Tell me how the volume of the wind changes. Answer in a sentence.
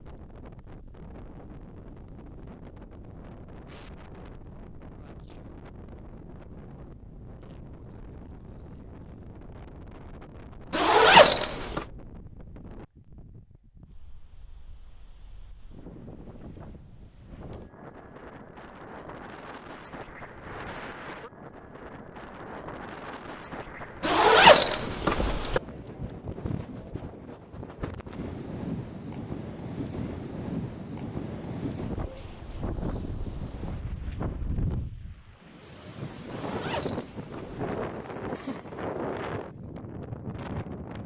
The loudness of the wind goes up.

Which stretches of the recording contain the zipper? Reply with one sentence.
You can hear the zipper from 10.7 to 11.8 s, from 24.0 to 25.6 s and from 36.3 to 37.7 s.